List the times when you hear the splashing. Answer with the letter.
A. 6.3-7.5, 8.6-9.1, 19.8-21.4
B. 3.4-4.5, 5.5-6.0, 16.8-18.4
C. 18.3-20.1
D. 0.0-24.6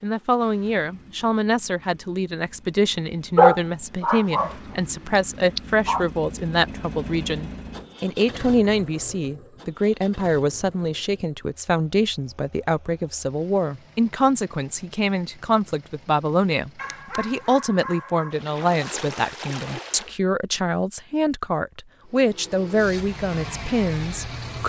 C.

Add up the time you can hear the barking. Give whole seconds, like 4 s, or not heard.
3 s.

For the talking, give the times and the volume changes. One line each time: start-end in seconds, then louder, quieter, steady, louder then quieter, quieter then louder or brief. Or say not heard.
0.0-24.6 steady.